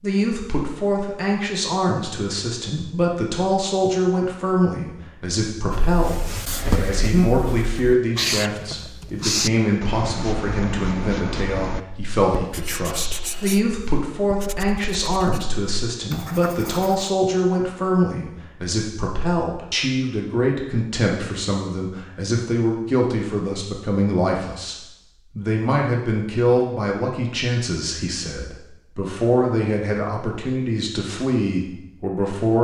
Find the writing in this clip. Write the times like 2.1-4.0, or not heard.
5.7-17.1.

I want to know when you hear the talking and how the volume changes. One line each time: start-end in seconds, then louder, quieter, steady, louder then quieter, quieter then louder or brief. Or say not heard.
0.0-32.5 steady.